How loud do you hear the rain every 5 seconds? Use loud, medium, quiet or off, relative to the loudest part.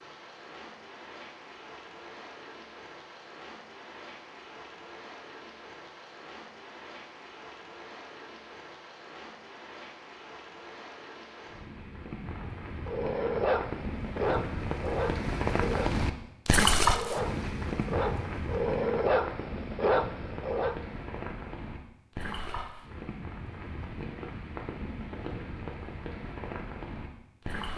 quiet, quiet, medium, loud, medium, medium.